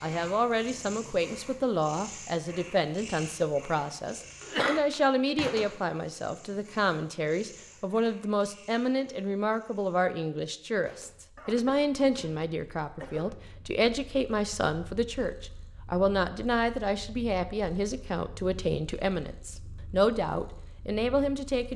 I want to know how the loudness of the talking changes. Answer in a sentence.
The loudness of the talking stays about the same.